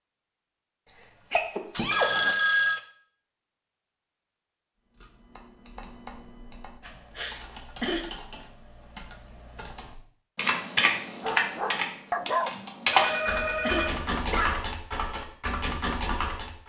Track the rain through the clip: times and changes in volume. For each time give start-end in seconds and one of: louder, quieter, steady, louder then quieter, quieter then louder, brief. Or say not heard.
not heard.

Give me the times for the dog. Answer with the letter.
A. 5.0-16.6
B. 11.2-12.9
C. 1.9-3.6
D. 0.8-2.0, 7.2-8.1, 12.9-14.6
B.